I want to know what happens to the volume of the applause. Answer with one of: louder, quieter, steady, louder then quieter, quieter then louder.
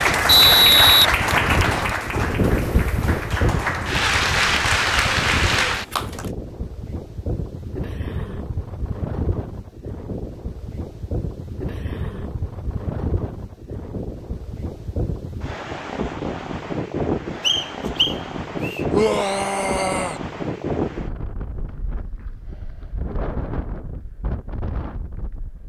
quieter then louder.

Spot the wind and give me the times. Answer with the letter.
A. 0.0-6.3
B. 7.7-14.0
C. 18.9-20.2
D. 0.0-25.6
D.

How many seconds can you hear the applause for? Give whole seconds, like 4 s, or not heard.
6 s.